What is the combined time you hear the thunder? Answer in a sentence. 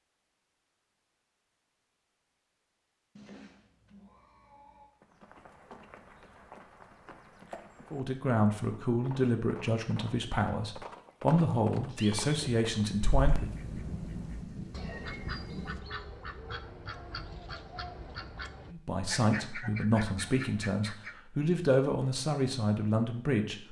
The thunder can be heard for 3 seconds in total.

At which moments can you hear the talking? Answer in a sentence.
The talking can be heard from 7.9 to 13.5 s and from 18.7 to 23.6 s.